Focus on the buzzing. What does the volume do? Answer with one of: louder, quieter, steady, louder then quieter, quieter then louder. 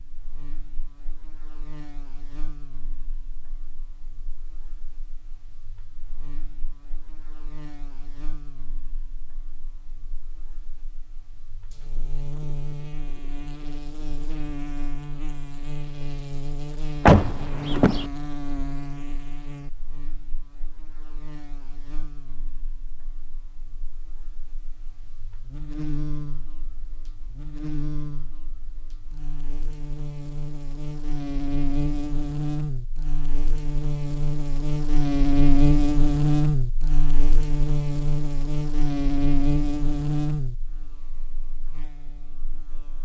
louder.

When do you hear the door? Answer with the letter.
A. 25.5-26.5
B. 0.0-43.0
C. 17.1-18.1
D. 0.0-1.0
C.